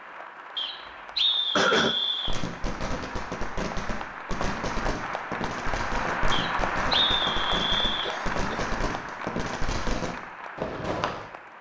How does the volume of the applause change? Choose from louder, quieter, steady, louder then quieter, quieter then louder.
louder then quieter.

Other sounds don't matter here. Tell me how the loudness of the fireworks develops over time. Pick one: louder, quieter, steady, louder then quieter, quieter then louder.
steady.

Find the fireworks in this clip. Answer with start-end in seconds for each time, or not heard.
2.2-11.3.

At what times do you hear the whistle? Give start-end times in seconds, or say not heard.
0.6-2.4, 6.3-8.1.